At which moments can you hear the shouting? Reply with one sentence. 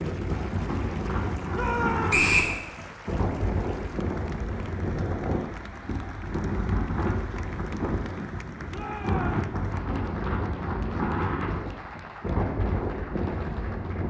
You can hear the shouting from 1.5 to 2.2 s and from 8.7 to 9.4 s.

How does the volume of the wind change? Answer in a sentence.
The loudness of the wind stays about the same.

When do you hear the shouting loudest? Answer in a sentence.
The volume of the shouting peaks at 2 seconds.